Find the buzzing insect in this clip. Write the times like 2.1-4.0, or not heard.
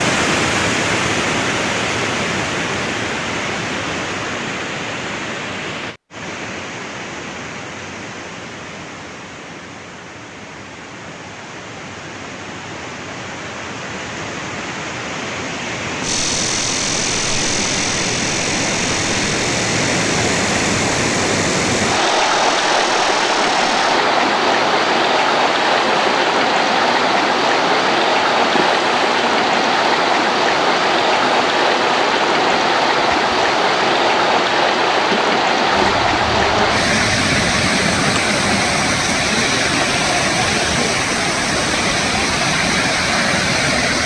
16.0-39.0.